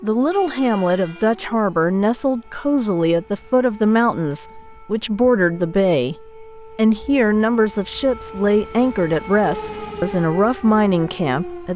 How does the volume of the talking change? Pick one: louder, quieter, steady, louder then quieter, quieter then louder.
steady.